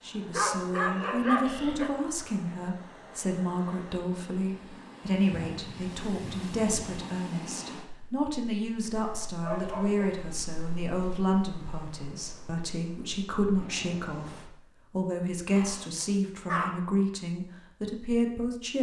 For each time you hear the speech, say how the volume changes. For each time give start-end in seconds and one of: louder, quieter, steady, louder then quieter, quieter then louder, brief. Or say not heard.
0.0-18.7 steady.